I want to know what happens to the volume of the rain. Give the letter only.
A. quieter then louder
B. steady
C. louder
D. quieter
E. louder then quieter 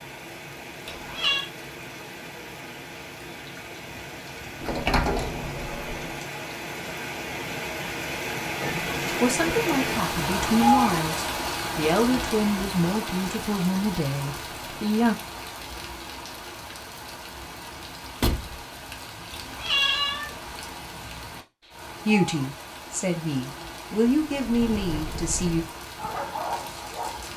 E.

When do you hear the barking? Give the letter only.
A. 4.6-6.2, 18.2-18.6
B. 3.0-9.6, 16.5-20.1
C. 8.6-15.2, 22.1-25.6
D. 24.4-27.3
D.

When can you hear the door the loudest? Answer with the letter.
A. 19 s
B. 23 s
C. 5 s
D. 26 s
C.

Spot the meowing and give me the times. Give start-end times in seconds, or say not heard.
0.8-1.4, 19.3-20.8.